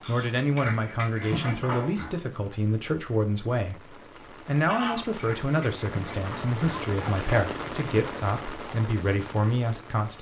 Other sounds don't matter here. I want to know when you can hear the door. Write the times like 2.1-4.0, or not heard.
not heard.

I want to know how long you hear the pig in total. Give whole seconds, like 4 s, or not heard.
3 s.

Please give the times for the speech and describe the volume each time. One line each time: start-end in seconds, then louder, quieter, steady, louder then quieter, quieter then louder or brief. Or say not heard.
0.1-10.1 steady.